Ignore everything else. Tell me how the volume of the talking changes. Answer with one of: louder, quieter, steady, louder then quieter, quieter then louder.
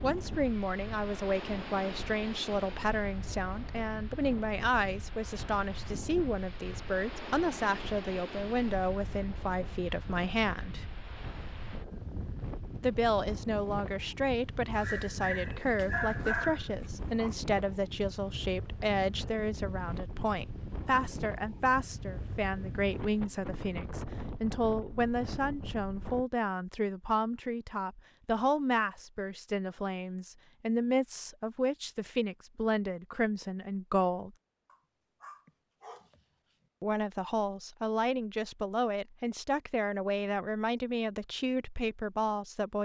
steady.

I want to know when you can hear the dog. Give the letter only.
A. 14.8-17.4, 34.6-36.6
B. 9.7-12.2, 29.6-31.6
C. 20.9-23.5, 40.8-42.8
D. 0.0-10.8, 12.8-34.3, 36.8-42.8
A.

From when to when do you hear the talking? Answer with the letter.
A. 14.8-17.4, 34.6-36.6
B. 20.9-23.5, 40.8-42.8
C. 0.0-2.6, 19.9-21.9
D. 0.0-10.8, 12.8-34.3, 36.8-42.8
D.